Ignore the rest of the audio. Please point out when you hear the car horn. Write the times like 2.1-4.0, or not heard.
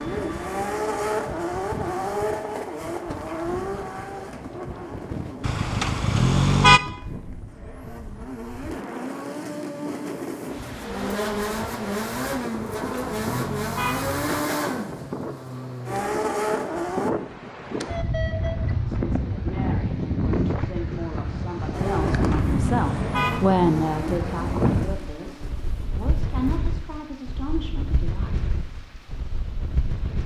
5.4-6.8, 12.6-14.4, 22.1-23.6.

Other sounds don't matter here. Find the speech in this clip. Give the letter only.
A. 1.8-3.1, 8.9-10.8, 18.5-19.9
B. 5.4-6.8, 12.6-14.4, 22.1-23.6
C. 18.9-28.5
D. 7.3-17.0
C.